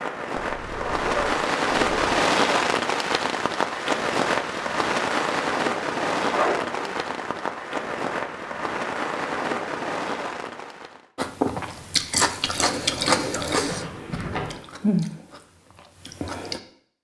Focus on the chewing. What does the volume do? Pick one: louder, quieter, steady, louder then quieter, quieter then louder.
quieter.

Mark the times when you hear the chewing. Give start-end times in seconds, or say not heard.
11.2-16.6.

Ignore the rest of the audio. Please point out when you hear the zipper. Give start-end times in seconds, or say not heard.
0.5-2.2, 6.3-6.9, 13.7-14.6.